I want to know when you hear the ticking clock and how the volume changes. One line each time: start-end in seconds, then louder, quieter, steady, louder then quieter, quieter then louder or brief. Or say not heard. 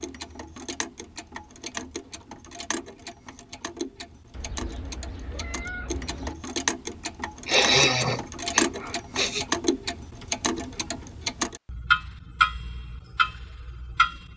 0.0-14.3 louder.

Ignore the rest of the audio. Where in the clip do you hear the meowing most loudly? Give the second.
6 s.